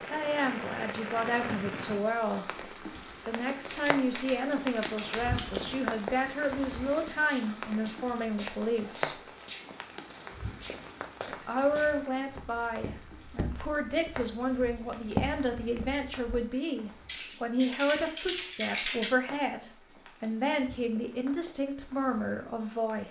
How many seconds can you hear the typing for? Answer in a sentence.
You can hear the typing for 4 seconds altogether.